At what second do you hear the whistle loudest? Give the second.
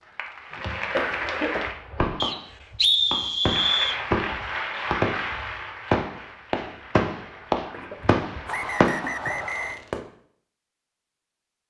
3 s.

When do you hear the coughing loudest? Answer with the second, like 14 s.
1 s.